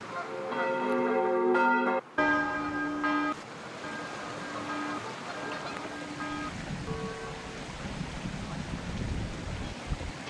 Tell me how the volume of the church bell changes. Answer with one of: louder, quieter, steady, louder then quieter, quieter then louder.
quieter.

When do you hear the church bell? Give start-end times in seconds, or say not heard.
0.1-7.5.